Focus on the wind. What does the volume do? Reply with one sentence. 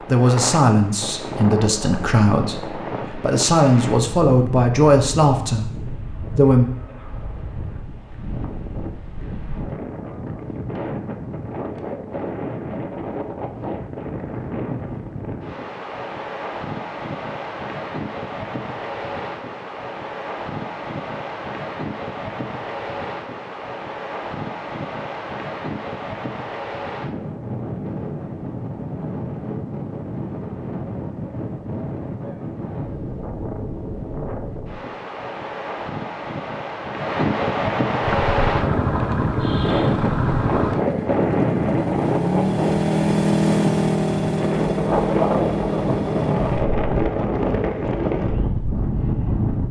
The volume of the wind goes up.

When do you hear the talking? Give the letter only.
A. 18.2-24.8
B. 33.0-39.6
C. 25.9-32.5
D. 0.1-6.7
D.